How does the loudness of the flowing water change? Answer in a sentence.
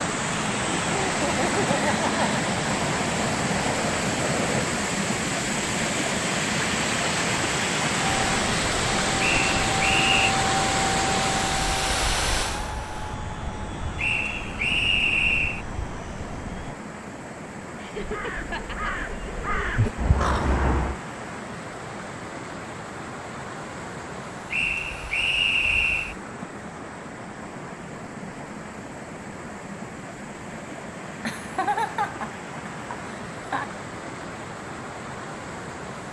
The volume of the flowing water goes down.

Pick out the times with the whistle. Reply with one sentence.
The whistle can be heard from 9.2 to 10.3 s, from 13.9 to 15.7 s and from 24.5 to 26.1 s.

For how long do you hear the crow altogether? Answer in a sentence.
The crow can be heard for 3 seconds in total.